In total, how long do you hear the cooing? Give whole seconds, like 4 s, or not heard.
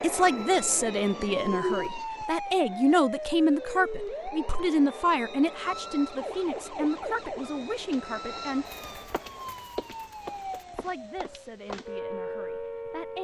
4 s.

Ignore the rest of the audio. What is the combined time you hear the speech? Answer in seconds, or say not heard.
11 s.